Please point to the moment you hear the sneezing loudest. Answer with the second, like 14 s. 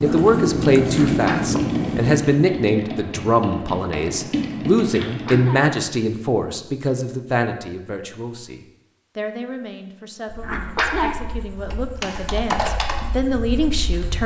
11 s.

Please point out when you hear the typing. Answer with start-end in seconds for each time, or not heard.
0.0-5.4, 11.7-14.2.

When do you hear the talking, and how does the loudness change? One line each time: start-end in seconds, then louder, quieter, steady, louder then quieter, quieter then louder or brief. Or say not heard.
0.0-14.2 quieter then louder.